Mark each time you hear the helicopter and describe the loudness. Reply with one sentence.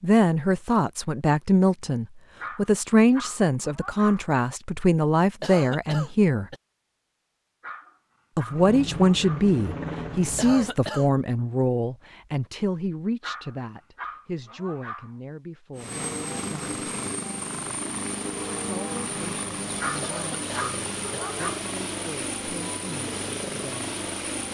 The helicopter can be heard briefly from 8.4 to 10.8 s; and from 15.8 to 24.5 s, at a steady volume.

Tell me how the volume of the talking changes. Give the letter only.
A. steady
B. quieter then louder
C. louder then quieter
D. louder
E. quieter
E.